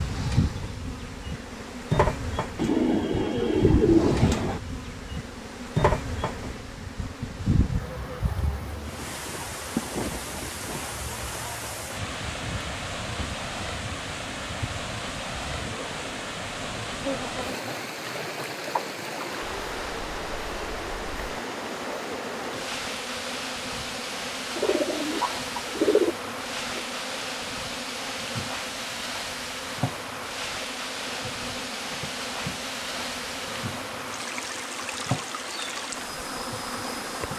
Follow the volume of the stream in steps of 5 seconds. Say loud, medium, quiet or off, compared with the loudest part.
quiet, medium, loud, loud, loud, loud, loud, loud.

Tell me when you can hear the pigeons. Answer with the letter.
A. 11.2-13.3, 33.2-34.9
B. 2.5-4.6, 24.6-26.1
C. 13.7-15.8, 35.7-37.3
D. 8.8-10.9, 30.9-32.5
B.